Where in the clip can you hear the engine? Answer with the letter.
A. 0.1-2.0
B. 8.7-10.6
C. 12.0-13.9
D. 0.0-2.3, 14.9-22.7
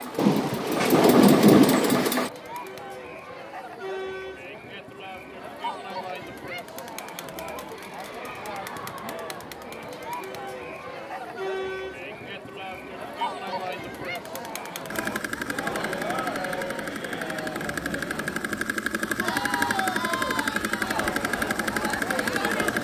D.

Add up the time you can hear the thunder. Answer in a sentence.
You can hear the thunder for 2 seconds altogether.